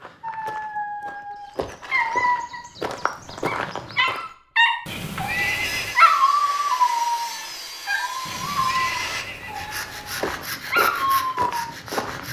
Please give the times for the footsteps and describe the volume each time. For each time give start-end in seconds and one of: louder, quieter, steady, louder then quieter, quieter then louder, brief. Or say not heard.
0.0-4.2 louder
10.0-12.2 brief.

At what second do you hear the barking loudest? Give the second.
6 s.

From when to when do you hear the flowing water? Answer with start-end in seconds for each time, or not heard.
not heard.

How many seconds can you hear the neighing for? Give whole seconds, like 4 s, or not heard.
4 s.